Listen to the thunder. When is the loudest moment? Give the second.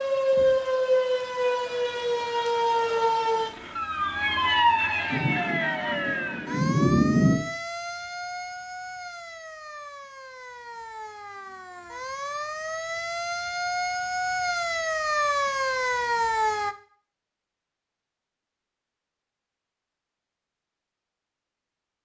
7 s.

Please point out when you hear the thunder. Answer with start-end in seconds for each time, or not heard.
5.1-7.3.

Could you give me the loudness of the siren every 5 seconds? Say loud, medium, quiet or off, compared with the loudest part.
loud, medium, medium, loud, off.